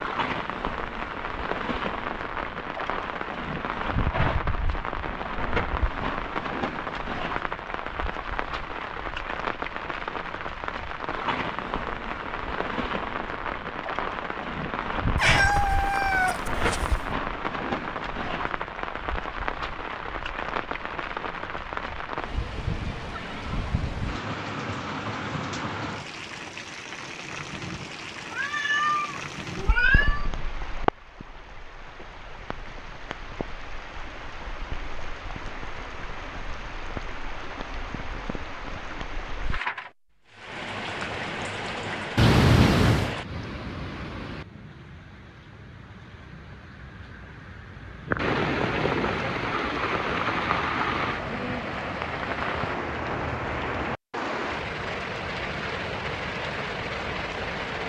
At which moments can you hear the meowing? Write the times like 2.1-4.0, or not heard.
15.2-16.9, 28.3-30.3, 42.1-43.1.